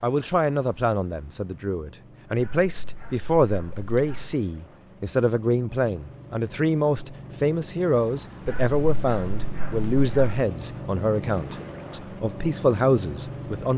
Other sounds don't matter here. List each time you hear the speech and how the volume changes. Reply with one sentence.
The speech can be heard from 0.0 to 13.7 s, at a steady volume.